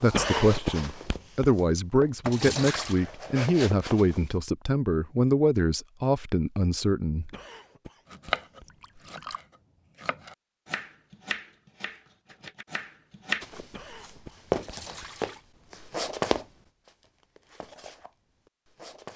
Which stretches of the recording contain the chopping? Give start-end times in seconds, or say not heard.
8.1-13.4.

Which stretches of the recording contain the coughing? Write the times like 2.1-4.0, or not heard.
0.1-1.5, 7.3-8.7, 13.7-15.1.